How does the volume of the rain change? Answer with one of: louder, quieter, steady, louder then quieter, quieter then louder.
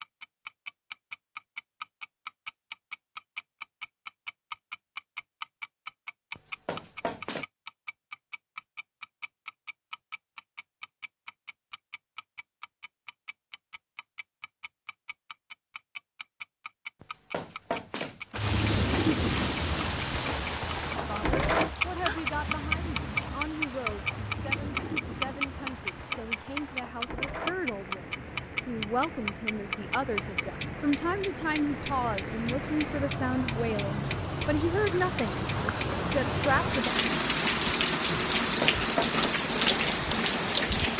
quieter then louder.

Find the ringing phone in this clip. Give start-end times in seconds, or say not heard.
not heard.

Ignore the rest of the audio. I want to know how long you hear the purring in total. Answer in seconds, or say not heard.
not heard.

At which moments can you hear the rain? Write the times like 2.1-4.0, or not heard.
18.4-40.9.